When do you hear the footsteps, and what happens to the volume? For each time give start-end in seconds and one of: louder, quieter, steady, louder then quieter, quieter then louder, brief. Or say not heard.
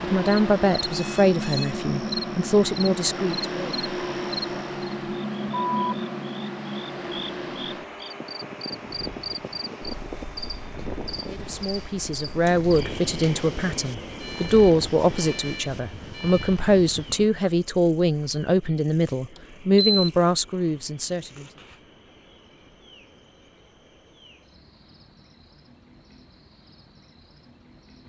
not heard.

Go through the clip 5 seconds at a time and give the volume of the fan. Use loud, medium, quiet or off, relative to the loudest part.
loud, loud, medium, quiet, off, off.